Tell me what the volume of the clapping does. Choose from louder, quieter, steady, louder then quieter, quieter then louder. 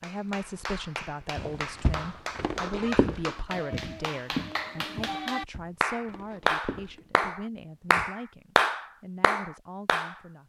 louder.